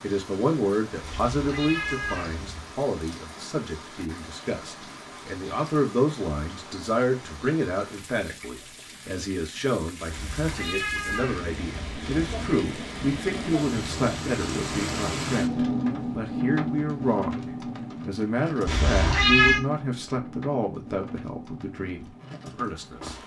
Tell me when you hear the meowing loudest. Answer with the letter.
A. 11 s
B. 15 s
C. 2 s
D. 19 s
D.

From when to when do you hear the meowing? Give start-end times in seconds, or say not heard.
1.0-2.8, 10.1-12.7, 18.6-19.6.